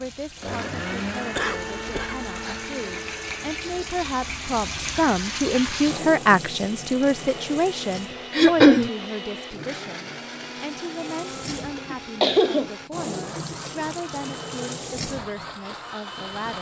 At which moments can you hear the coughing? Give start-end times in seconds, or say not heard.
1.4-2.6, 8.3-8.9, 11.8-12.7.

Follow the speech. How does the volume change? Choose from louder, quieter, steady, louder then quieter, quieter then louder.
louder then quieter.